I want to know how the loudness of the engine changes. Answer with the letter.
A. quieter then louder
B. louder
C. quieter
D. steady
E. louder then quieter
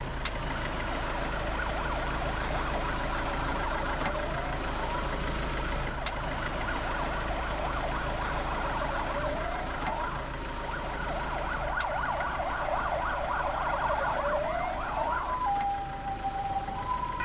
C.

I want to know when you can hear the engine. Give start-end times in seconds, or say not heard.
0.0-17.2.